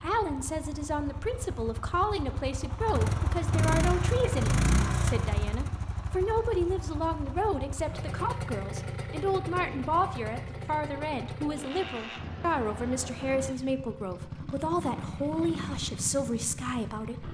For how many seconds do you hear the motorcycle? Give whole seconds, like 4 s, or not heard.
17 s.